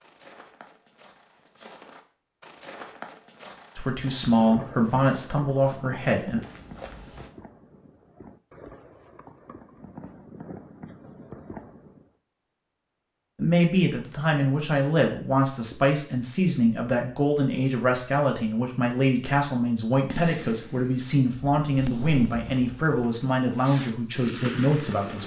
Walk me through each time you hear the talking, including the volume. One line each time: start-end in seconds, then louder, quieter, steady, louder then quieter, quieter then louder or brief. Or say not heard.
3.8-6.4 brief
13.3-25.2 steady.